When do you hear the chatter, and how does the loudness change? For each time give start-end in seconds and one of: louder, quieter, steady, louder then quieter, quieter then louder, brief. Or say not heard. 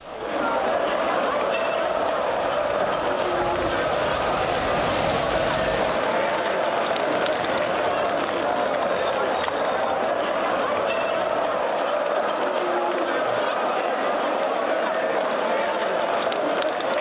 0.0-16.9 steady.